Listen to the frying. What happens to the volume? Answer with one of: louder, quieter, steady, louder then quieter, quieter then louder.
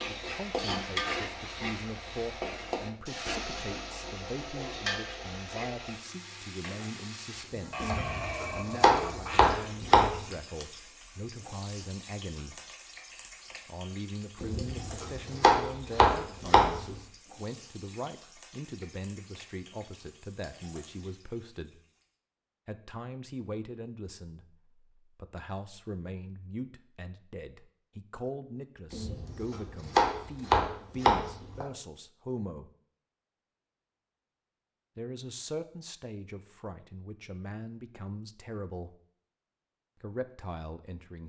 quieter.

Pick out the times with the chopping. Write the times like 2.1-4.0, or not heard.
7.8-10.2, 14.4-16.9, 28.9-31.6.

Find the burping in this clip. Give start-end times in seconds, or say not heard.
7.7-9.6.